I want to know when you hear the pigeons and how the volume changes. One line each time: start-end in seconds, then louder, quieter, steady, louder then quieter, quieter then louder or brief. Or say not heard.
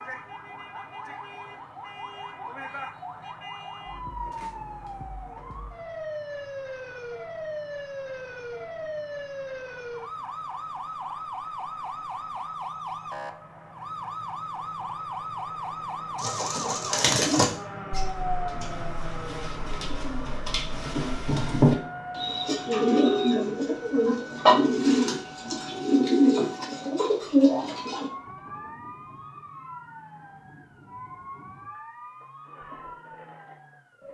16.1-28.1 quieter then louder.